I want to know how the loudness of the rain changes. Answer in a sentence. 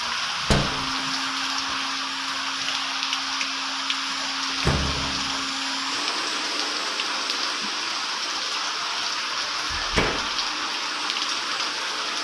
The loudness of the rain stays about the same.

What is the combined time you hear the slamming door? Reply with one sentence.
You can hear the slamming door for 2 seconds altogether.